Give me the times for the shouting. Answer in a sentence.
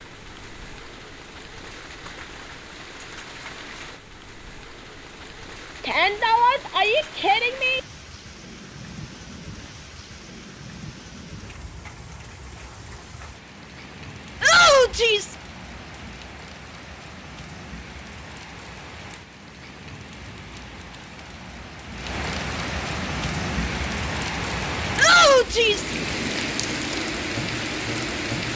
The shouting can be heard from 5.8 to 7.8 s, from 14.4 to 15.3 s and from 24.9 to 25.9 s.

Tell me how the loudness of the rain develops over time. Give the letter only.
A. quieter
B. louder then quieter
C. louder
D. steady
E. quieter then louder
C.